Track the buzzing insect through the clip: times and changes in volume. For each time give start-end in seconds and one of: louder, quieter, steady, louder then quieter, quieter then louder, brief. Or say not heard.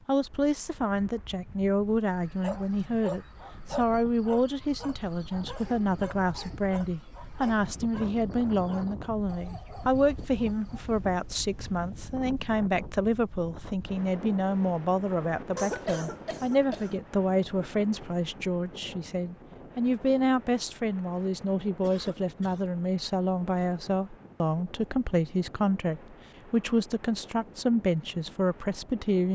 not heard.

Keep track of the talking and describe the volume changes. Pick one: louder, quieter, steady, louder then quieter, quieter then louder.
steady.